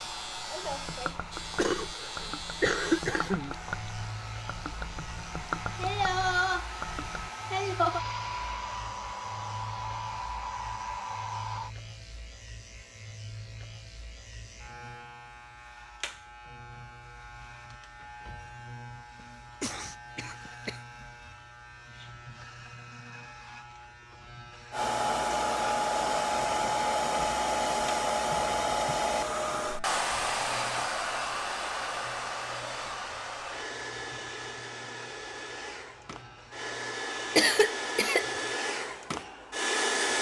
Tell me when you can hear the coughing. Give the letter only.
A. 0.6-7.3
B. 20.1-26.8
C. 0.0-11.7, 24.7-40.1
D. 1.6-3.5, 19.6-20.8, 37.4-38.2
D.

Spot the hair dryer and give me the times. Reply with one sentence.
You can hear the hair dryer from 0.0 to 11.7 s and from 24.7 to 40.1 s.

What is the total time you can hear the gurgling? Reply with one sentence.
The gurgling can be heard for 7 seconds in total.